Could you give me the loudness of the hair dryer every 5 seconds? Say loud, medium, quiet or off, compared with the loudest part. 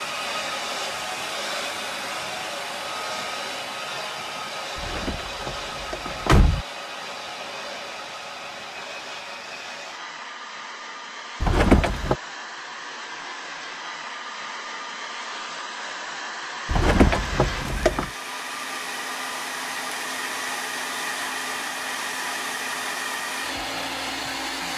loud, medium, medium, loud, loud.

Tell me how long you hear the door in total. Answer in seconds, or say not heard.
4 s.